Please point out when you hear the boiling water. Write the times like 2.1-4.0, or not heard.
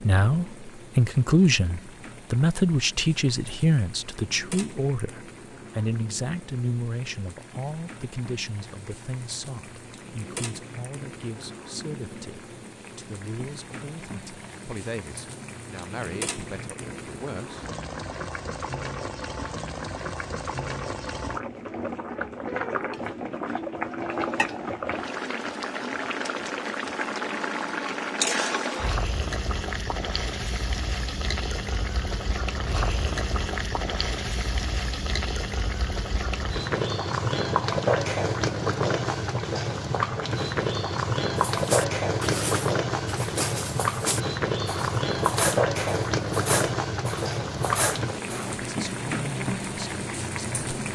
0.0-50.9.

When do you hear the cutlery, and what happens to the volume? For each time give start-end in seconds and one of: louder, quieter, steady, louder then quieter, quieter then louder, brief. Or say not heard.
41.4-48.5 steady.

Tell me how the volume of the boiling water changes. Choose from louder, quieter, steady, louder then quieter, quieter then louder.
louder.